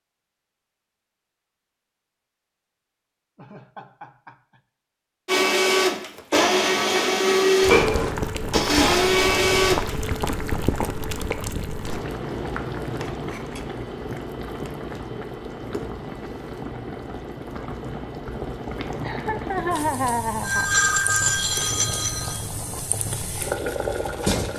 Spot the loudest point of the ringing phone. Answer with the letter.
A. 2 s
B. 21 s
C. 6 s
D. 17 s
B.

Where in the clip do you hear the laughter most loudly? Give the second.
20 s.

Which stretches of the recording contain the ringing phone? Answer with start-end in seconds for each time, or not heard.
20.4-22.4.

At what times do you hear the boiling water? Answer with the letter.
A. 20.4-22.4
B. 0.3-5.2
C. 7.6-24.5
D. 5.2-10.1
C.